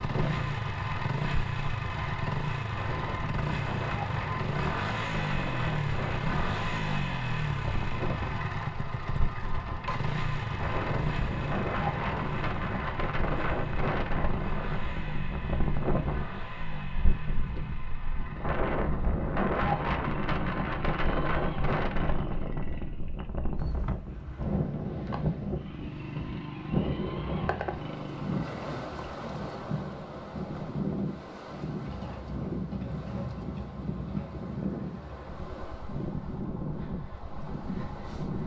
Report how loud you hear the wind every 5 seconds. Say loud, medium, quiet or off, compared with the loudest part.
medium, medium, loud, loud, loud, loud, loud, medium.